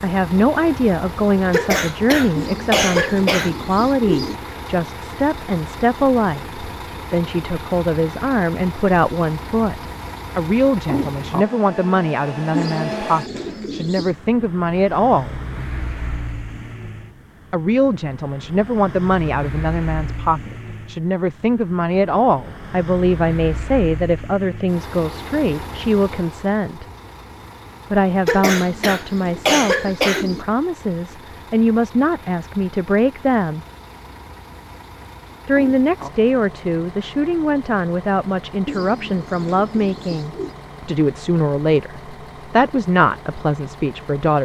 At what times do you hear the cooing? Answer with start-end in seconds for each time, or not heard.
2.4-4.3, 12.5-14.2, 28.6-30.4, 38.6-40.5.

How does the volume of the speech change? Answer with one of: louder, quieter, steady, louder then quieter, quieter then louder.
steady.